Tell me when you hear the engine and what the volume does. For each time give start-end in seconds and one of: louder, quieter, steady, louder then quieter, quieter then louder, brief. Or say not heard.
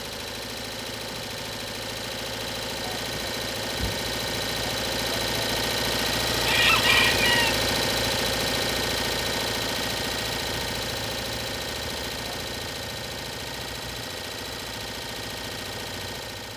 0.0-16.5 louder then quieter.